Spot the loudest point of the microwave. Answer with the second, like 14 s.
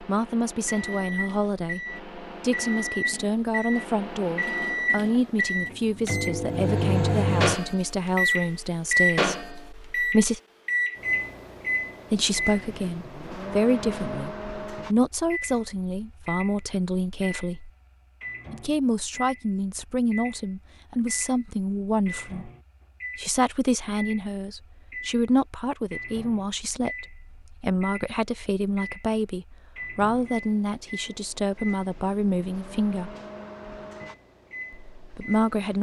9 s.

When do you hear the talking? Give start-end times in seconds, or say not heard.
0.0-10.4, 12.1-17.7, 18.5-22.5, 23.1-33.1, 35.0-35.7.